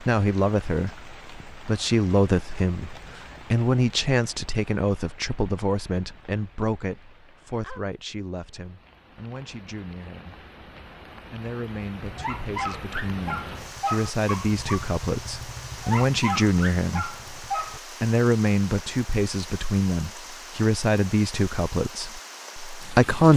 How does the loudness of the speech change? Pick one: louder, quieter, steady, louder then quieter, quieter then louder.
quieter then louder.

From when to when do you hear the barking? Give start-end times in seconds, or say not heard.
12.1-17.8.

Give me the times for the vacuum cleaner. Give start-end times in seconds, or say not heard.
not heard.